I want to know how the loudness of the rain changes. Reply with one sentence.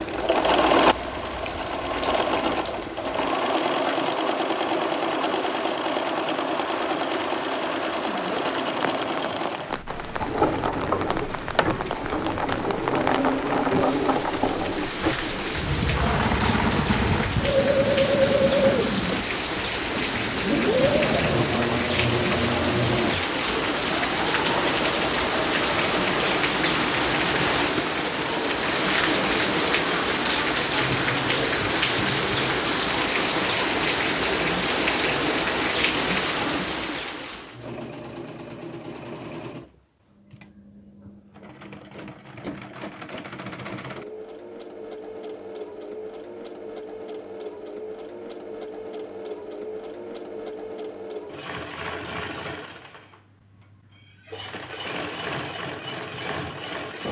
The volume of the rain goes up.